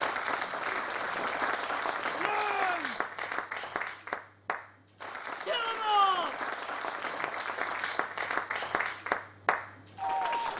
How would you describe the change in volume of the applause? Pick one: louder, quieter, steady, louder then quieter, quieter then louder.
quieter then louder.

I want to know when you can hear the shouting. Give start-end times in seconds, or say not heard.
2.1-3.0, 5.5-6.3.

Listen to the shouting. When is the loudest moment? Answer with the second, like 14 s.
6 s.